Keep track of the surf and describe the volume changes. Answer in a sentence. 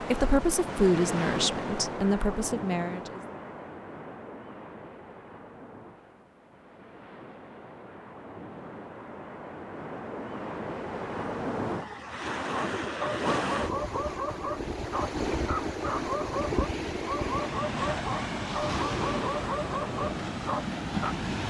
The loudness of the surf goes down, then up.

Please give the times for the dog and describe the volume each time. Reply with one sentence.
You can hear the dog from 12.4 to 21.1 s, at a steady volume.